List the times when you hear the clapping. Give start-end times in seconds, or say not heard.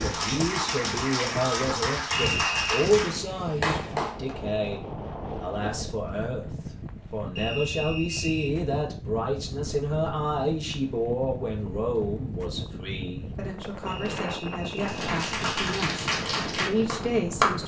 0.0-4.3, 14.8-17.6.